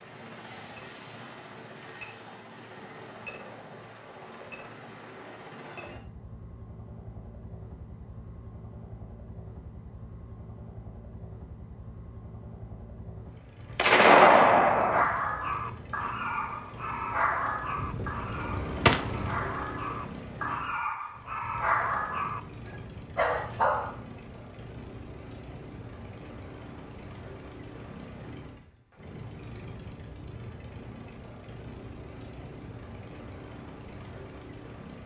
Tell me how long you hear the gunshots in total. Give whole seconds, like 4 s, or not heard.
3 s.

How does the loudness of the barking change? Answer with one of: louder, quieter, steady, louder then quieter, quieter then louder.
quieter then louder.